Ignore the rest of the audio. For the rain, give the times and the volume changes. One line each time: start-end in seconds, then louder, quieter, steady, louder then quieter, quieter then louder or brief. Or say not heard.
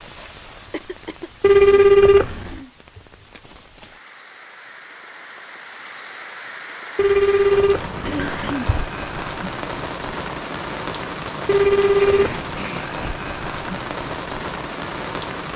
0.0-15.5 louder.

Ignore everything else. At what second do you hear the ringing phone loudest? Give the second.
2 s.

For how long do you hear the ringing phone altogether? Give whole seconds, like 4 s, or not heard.
4 s.